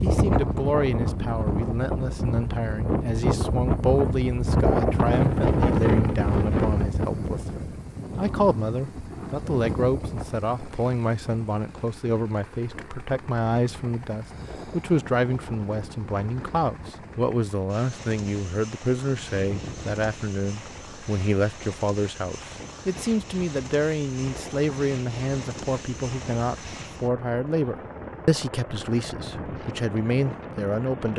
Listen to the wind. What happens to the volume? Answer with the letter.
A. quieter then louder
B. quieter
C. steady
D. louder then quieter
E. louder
B.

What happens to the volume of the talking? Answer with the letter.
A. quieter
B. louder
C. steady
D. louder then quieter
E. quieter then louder
C.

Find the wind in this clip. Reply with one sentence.
You can hear the wind from 0.0 to 31.1 s.